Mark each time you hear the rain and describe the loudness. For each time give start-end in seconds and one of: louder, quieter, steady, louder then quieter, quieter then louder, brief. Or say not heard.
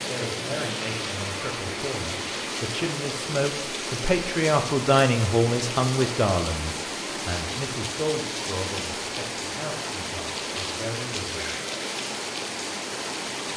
0.0-13.5 steady.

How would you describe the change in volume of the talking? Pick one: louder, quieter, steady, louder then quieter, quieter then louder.
louder then quieter.